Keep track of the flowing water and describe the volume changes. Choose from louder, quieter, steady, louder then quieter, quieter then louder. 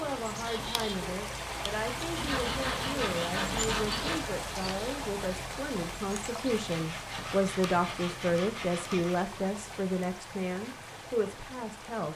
quieter.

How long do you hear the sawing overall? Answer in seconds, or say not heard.
5 s.